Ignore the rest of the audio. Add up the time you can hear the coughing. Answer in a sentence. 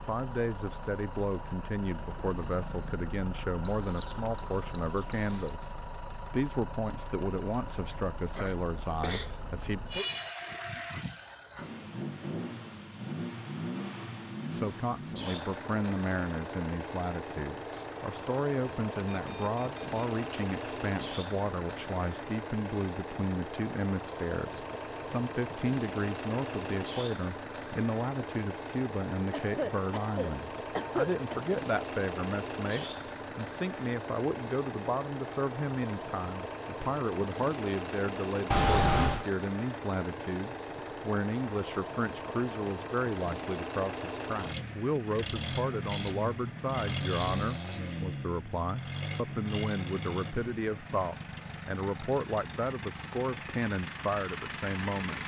You can hear the coughing for 3 seconds altogether.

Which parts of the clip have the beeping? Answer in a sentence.
You can hear the beeping from 3.6 to 5.5 s, from 19.2 to 20.1 s and from 38.5 to 39.2 s.